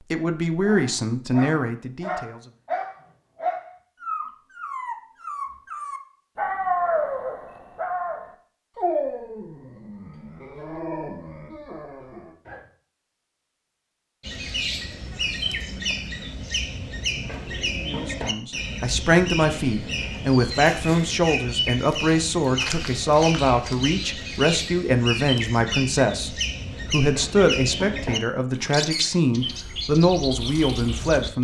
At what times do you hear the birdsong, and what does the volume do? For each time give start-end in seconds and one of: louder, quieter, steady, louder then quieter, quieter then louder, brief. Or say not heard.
14.2-31.3 steady.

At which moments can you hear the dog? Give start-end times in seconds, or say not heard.
0.6-12.7.